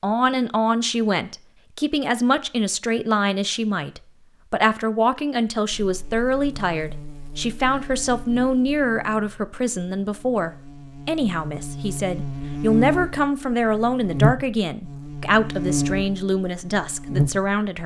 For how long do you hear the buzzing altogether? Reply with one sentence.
You can hear the buzzing for 12 seconds altogether.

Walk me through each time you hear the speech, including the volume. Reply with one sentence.
You can hear the speech from 0.0 to 17.8 s, at a steady volume.